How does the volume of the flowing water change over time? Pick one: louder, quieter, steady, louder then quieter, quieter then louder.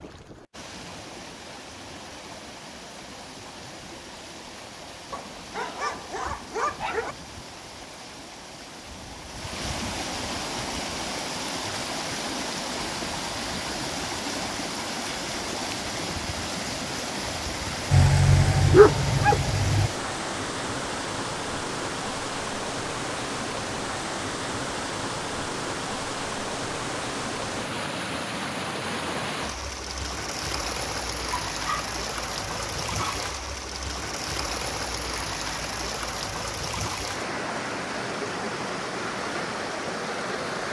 louder.